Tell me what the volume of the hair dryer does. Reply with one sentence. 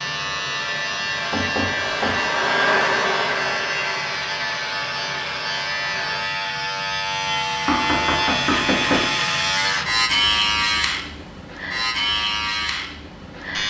The loudness of the hair dryer goes up, then down.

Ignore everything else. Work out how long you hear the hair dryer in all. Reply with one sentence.
You can hear the hair dryer for 6 seconds altogether.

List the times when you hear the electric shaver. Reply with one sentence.
The electric shaver can be heard from 0.0 to 13.6 s.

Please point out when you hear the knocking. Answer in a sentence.
You can hear the knocking from 1.3 to 2.2 s and from 7.7 to 9.2 s.